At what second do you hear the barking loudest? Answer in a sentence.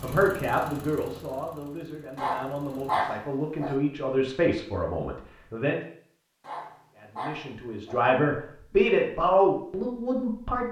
The volume of the barking peaks at 3 seconds.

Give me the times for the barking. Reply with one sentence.
You can hear the barking from 2.1 to 3.8 s and from 6.4 to 8.1 s.